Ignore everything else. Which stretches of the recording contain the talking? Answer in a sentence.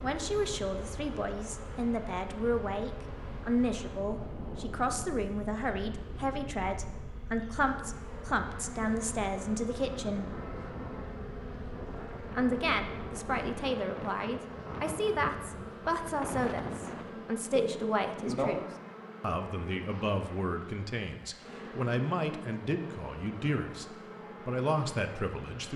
The talking can be heard from 0.0 to 10.3 s and from 12.3 to 25.7 s.